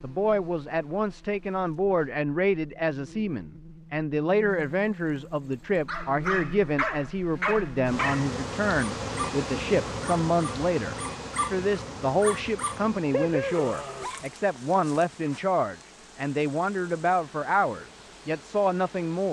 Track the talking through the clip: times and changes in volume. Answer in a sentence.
You can hear the talking from 0.0 to 19.2 s, at a steady volume.